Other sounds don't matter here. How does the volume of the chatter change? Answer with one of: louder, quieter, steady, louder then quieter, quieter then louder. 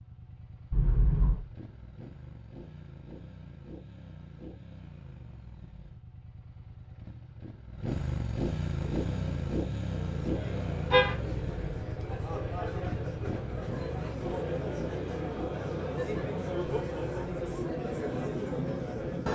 louder.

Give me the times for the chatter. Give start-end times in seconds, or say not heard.
8.9-19.2.